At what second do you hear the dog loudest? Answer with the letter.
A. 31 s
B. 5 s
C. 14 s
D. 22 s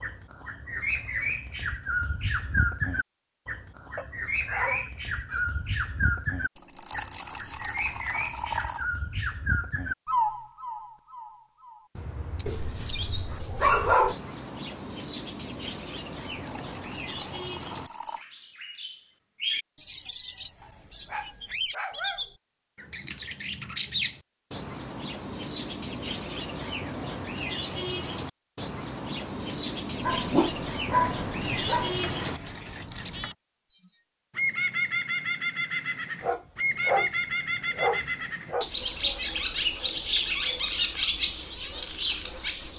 C.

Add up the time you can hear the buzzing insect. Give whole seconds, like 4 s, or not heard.
not heard.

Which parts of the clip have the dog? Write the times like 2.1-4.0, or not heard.
4.0-5.5, 12.4-14.2, 20.6-22.2, 30.0-31.9, 36.2-38.7.